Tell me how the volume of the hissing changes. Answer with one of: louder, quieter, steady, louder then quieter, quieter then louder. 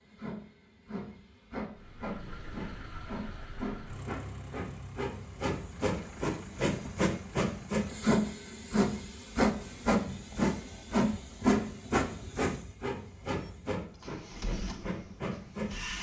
louder then quieter.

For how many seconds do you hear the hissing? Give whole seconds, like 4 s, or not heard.
16 s.